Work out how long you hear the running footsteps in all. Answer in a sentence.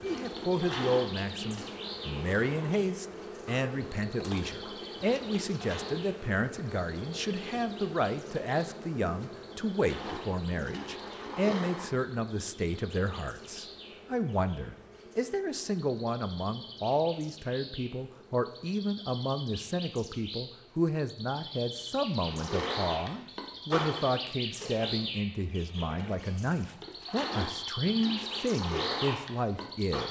You can't hear the running footsteps here.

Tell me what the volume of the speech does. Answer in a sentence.
The loudness of the speech stays about the same.